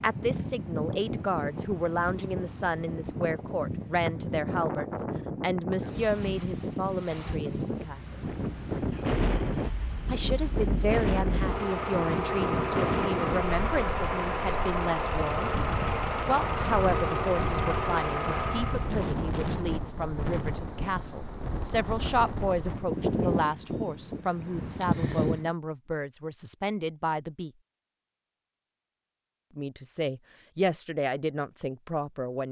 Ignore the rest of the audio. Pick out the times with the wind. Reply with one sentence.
The wind can be heard from 0.0 to 25.5 s.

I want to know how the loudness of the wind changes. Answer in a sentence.
The loudness of the wind stays about the same.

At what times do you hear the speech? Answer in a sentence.
The speech can be heard from 0.0 to 8.2 s, from 10.1 to 15.5 s, from 16.2 to 27.5 s and from 29.6 to 32.4 s.